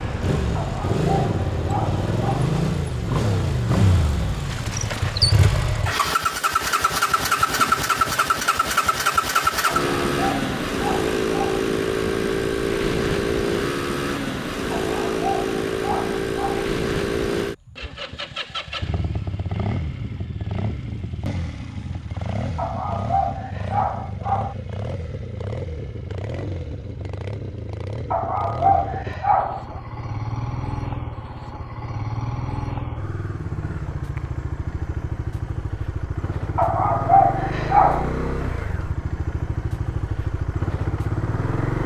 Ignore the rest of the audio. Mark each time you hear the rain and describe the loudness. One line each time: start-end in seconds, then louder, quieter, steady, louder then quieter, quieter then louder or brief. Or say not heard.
not heard.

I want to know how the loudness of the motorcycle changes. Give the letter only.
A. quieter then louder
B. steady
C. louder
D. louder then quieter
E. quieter
E.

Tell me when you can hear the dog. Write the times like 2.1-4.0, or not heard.
0.6-2.5, 9.7-11.7, 14.7-16.6, 22.6-24.6, 28.1-29.8, 36.5-38.1.